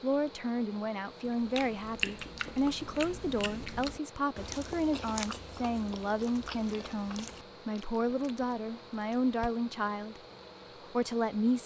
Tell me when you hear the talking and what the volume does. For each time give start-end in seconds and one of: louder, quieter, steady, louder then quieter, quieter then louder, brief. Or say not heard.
0.0-10.2 steady
10.9-11.6 brief.